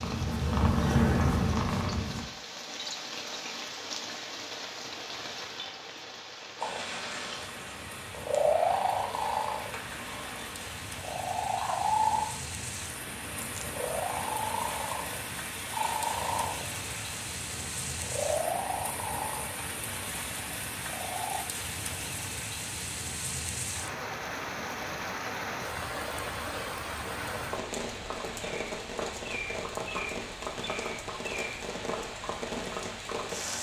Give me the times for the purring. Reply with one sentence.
The purring can be heard from 0.0 to 2.2 s and from 6.5 to 21.4 s.